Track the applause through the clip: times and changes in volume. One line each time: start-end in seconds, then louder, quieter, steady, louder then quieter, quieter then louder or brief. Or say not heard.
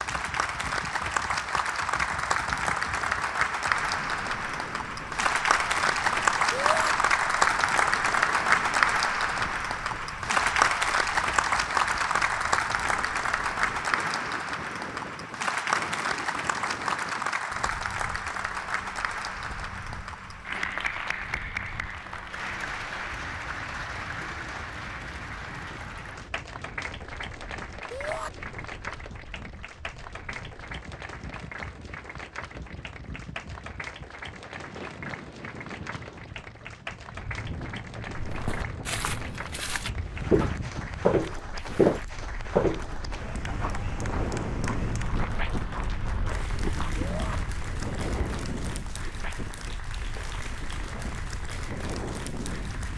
0.0-52.9 quieter.